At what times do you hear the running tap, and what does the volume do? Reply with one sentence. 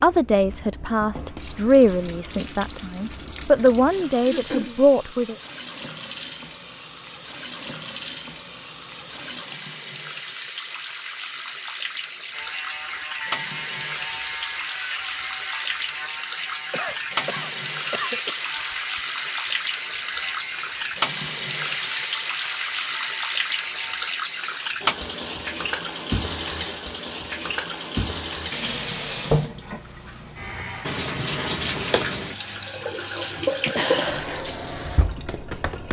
The running tap can be heard from 0.0 to 35.8 s, getting louder.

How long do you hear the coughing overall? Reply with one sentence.
You can hear the coughing for 3 seconds altogether.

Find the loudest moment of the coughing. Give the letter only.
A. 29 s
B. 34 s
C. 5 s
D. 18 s
B.